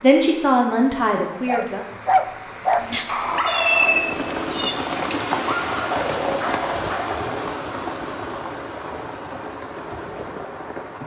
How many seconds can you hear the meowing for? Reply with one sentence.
You can hear the meowing for 2 seconds altogether.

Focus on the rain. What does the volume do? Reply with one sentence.
The loudness of the rain goes up, then down.